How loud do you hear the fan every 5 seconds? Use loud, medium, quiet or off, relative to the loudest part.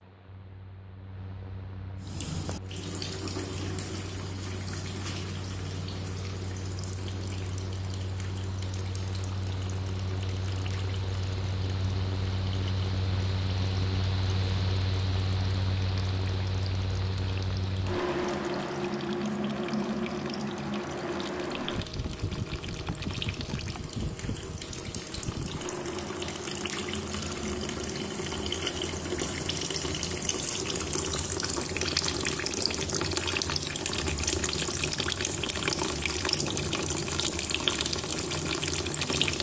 quiet, medium, loud, loud, loud, medium, medium, medium.